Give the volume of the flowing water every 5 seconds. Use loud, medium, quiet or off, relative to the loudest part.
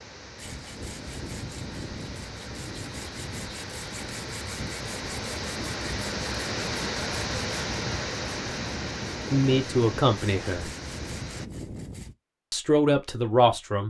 medium, loud, medium.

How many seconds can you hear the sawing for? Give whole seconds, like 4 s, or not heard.
12 s.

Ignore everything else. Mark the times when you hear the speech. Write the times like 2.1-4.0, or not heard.
9.3-10.7, 12.5-13.8.